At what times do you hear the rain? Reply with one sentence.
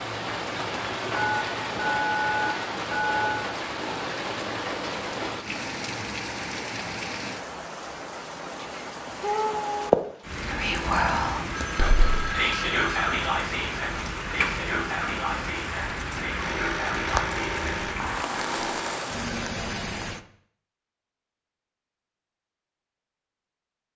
The rain can be heard from 0.0 to 20.2 s.